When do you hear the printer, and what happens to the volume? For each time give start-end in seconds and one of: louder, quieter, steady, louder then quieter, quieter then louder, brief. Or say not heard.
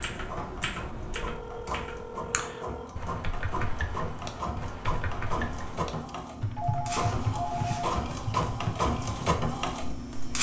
0.1-10.3 louder.